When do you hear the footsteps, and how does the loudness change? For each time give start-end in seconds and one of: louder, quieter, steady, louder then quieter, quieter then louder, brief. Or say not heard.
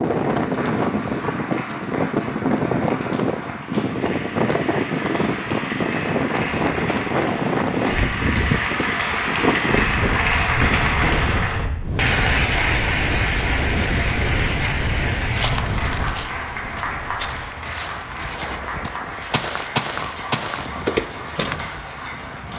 15.3-21.7 louder.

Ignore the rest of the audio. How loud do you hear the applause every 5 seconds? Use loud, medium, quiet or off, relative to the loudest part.
medium, loud, loud, medium, medium.